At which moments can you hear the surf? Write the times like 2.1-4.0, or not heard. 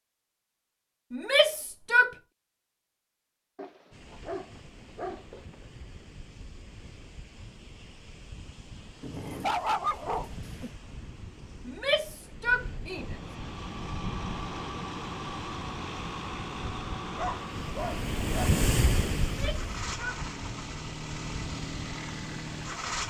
3.9-23.0.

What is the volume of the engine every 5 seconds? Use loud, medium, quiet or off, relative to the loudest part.
off, off, loud, loud, loud.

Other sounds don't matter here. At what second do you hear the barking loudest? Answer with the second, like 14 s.
10 s.